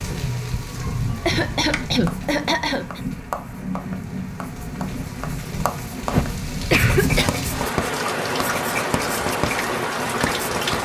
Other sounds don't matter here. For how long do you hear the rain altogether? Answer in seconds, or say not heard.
11 s.